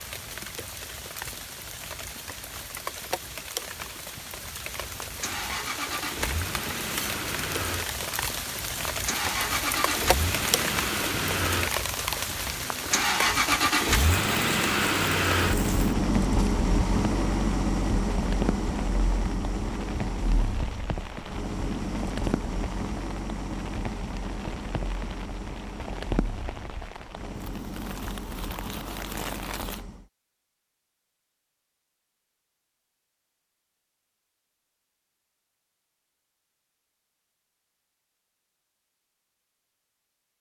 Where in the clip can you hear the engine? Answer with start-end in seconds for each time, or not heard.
4.8-30.1.